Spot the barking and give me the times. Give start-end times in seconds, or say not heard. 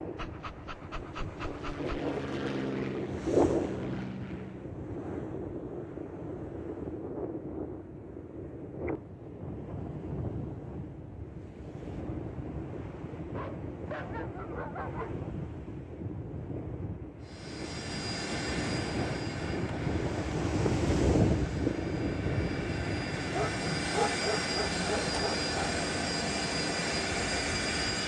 0.1-2.0, 13.3-15.2, 23.2-25.8.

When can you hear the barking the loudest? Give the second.
24 s.